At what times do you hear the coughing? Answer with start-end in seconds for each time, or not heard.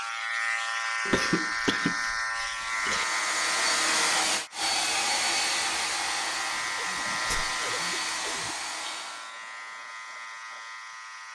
1.1-3.0, 6.5-8.6.